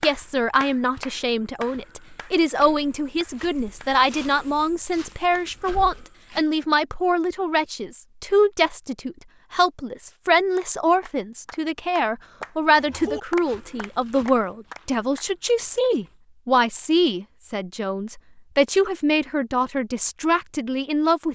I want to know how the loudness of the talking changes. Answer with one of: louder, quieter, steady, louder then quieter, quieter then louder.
steady.